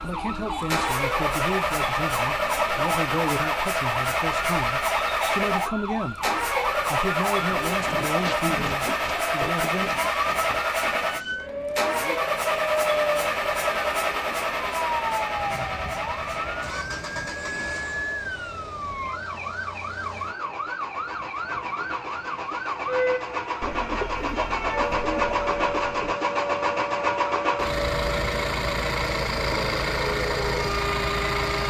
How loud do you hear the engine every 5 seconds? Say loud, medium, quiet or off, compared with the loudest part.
loud, loud, loud, medium, medium, loud, loud.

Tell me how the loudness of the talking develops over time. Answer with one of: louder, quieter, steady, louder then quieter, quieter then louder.
steady.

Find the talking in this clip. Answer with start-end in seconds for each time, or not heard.
0.0-6.2, 6.9-9.9.